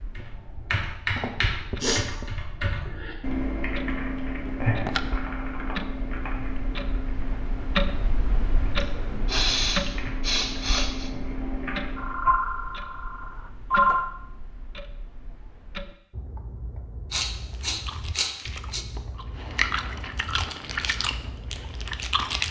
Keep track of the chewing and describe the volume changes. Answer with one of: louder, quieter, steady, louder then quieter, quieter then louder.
louder then quieter.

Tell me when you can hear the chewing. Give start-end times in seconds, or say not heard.
17.6-22.4.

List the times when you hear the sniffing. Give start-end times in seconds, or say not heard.
1.1-2.0, 8.8-11.1, 17.1-18.9.